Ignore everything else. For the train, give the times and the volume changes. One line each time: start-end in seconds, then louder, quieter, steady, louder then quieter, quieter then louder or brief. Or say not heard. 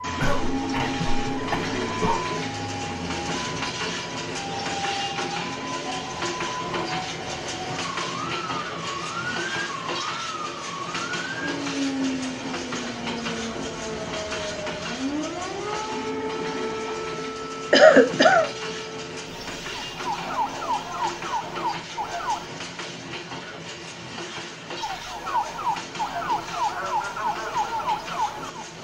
0.0-28.7 quieter.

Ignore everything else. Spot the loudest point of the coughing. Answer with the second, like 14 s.
18 s.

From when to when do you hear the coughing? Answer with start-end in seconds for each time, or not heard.
0.1-2.2, 17.7-18.4.